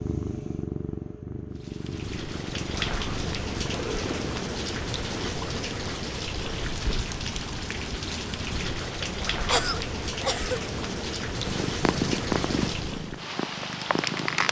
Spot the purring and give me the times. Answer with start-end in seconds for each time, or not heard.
0.0-5.3, 11.4-14.4.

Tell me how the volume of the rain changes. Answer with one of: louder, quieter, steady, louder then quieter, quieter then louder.
steady.